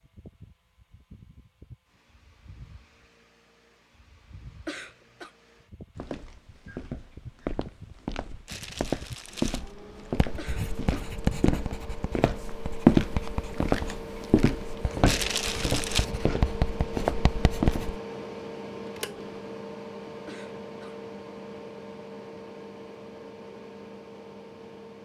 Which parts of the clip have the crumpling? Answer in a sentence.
The crumpling can be heard from 8.4 to 9.8 s and from 15.1 to 16.1 s.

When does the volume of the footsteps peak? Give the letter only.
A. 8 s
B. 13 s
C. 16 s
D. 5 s
B.